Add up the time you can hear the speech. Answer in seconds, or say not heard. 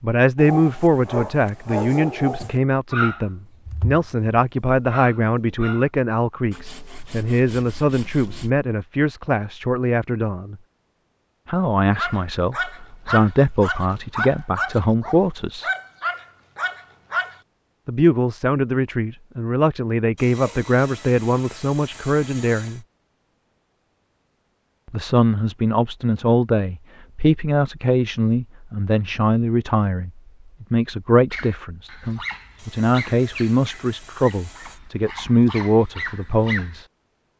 32 s.